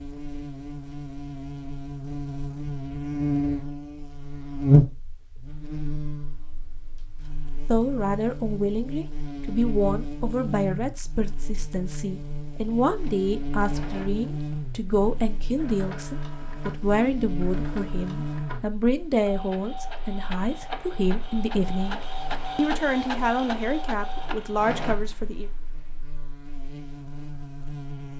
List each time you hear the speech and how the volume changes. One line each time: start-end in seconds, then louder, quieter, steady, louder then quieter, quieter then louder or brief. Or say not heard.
7.2-25.5 steady.